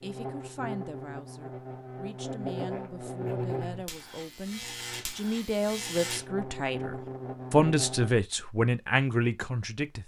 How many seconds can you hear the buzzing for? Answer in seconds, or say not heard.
8 s.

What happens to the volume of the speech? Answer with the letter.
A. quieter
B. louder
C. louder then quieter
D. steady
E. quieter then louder
B.